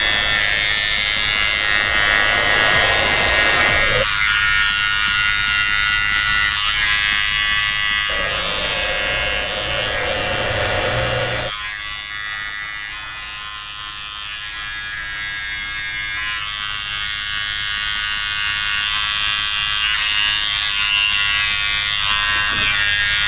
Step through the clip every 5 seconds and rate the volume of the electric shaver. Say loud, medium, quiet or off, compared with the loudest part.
loud, loud, medium, medium, loud.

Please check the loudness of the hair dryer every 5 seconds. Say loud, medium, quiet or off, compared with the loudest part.
loud, medium, loud, off, off.